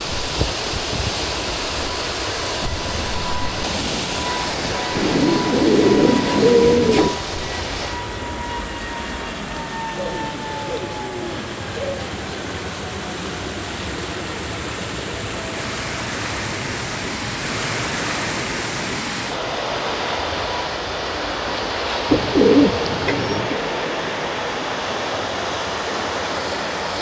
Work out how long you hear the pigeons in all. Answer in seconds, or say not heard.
6 s.